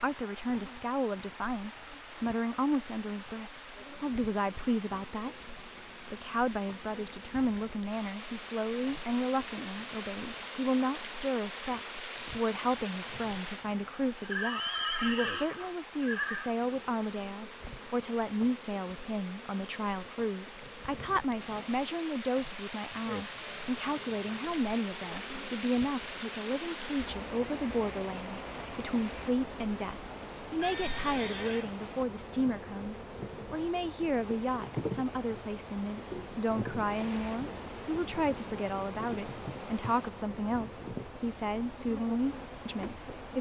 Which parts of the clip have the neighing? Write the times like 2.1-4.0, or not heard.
14.2-16.6, 30.6-31.7.